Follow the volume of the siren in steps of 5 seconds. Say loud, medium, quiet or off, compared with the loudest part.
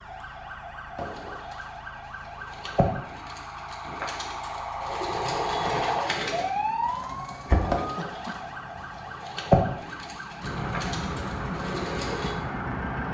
medium, loud, medium.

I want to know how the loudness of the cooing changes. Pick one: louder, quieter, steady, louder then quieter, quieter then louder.
louder then quieter.